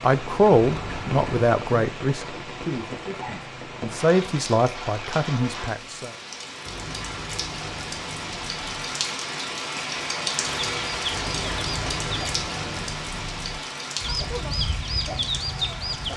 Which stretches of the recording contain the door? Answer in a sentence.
You can hear the door from 0.6 to 1.5 s, from 6.7 to 8.9 s and from 11.1 to 13.7 s.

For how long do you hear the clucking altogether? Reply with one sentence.
You can hear the clucking for 4 seconds altogether.